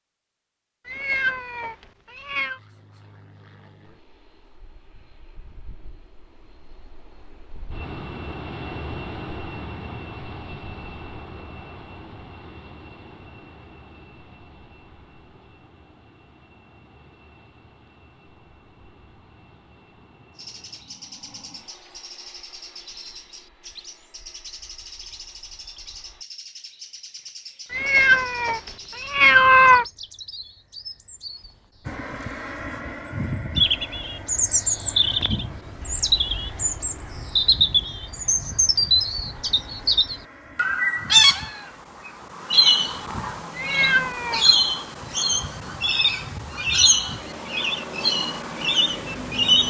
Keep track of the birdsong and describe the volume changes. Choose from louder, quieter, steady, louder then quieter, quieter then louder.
louder.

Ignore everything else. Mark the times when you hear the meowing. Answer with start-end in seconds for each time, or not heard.
0.8-2.6, 27.7-29.9, 43.5-44.5.